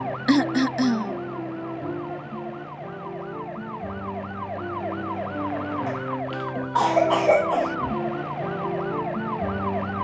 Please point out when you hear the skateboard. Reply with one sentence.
You can't hear the skateboard here.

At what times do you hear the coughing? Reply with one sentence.
You can hear the coughing from 0.2 to 1.2 s and from 5.8 to 7.8 s.